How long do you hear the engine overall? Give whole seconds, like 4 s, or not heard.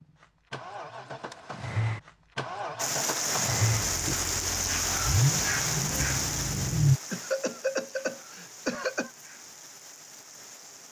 7 s.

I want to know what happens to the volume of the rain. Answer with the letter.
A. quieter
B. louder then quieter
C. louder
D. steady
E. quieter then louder
A.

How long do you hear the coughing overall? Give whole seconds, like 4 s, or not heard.
2 s.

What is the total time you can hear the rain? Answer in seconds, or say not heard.
8 s.